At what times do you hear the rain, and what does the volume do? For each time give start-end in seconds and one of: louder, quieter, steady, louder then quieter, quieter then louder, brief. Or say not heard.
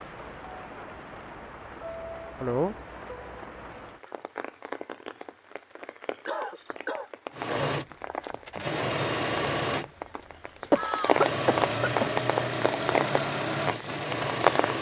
0.0-14.7 louder.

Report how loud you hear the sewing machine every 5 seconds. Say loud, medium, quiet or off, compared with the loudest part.
off, loud, loud.